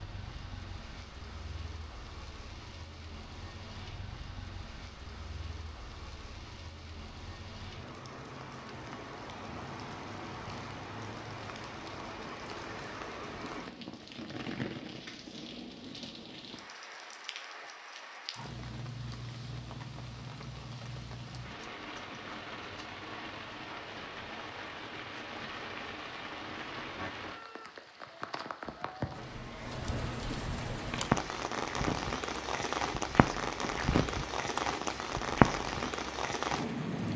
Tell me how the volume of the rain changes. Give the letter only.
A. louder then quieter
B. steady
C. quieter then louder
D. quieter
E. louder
E.